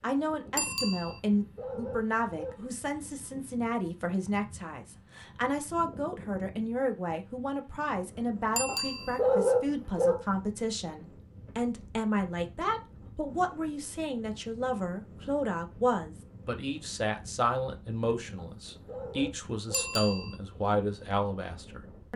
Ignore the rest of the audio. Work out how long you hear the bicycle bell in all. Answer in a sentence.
You can hear the bicycle bell for 2 seconds altogether.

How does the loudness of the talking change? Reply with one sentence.
The volume of the talking stays about the same.